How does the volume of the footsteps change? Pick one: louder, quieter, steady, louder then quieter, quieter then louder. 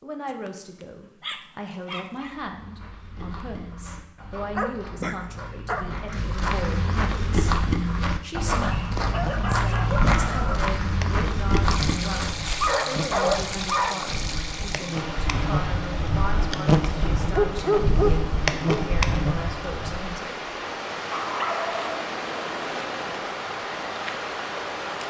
louder.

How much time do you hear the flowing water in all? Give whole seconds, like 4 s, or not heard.
13 s.